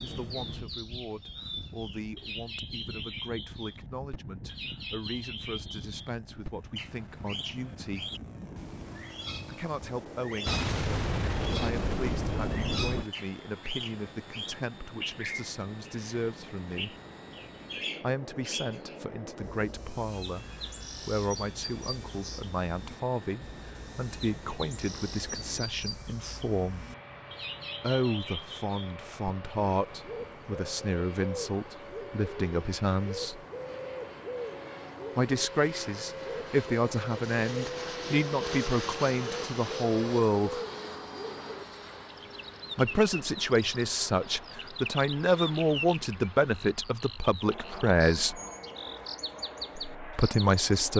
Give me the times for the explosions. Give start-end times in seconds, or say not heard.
10.4-13.1.